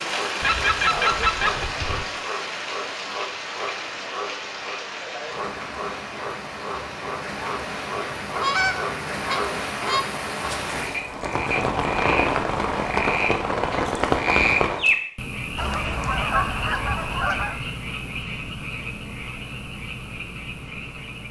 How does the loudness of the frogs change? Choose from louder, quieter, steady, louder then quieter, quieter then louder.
louder then quieter.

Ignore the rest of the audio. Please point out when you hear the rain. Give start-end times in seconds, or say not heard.
0.0-14.8.